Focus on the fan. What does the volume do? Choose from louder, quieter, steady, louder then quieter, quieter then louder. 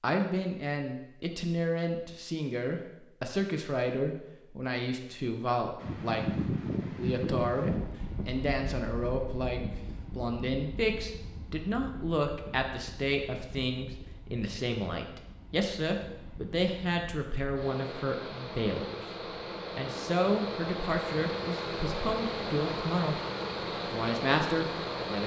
quieter then louder.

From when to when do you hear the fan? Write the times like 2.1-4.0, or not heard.
5.8-25.2.